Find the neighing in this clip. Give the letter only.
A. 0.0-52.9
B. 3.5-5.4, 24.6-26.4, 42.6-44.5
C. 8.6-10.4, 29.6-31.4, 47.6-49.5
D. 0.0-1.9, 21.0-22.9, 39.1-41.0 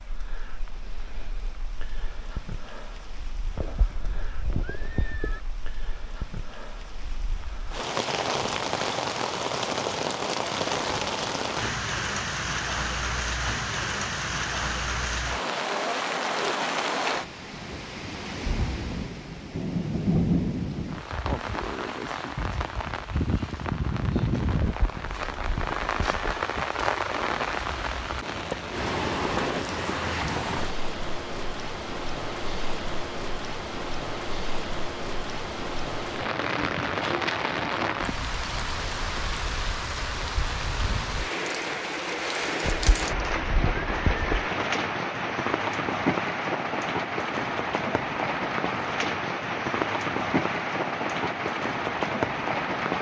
B.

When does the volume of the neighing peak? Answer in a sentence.
The volume of the neighing peaks at 44 seconds.